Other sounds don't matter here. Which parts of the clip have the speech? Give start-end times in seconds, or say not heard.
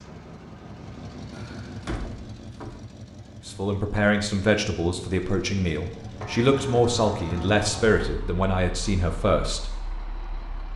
3.5-9.7.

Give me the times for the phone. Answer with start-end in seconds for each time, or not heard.
not heard.